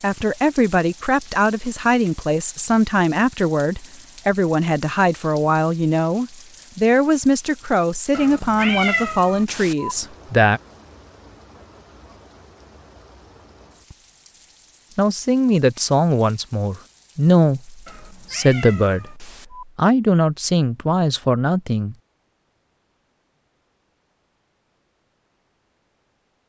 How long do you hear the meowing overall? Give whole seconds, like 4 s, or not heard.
4 s.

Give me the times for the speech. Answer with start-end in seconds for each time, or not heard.
0.0-10.6, 14.9-21.9.